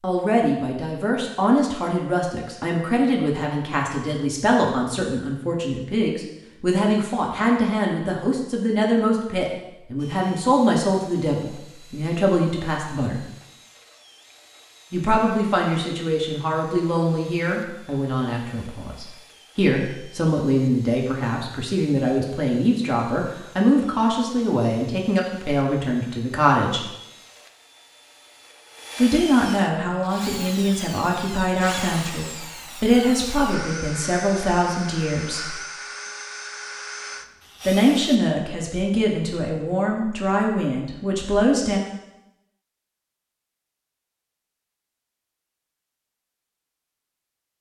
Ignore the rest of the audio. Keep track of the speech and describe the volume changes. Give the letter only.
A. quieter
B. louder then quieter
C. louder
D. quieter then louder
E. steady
E.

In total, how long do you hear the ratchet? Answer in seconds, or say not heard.
not heard.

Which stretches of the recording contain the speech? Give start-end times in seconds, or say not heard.
0.0-13.2, 14.9-26.9, 28.9-35.5, 37.6-41.8.